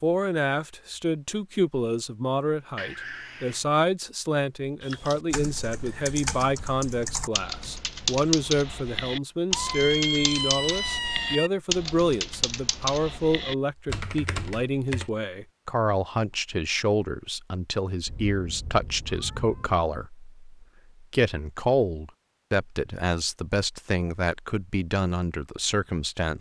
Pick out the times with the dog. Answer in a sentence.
The dog can't be heard in this clip.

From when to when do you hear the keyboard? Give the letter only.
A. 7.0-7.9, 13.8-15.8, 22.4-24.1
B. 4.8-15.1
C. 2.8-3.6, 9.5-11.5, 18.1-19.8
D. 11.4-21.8
B.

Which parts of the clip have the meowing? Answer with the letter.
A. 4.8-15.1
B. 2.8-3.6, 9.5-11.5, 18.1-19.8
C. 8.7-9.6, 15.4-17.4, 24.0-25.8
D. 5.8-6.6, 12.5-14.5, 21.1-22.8
B.